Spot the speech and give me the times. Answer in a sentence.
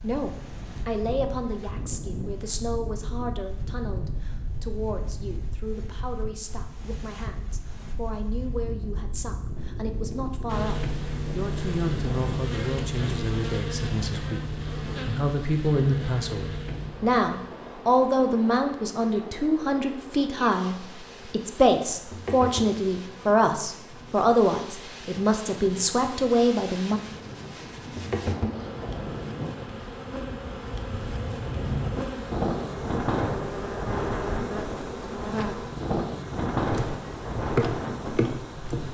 You can hear the speech from 0.0 to 27.0 s.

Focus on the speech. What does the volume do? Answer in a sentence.
The loudness of the speech goes up.